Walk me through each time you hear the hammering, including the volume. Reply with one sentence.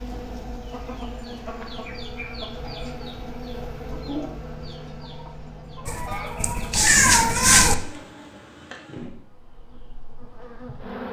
The hammering can't be heard in this clip.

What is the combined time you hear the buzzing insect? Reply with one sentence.
You can hear the buzzing insect for 11 seconds altogether.